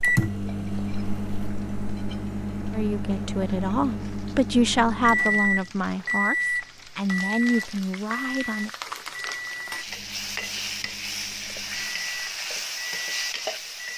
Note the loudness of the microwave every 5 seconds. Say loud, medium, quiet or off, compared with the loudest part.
loud, loud, quiet.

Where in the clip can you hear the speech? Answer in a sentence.
The speech can be heard from 2.7 to 8.7 s.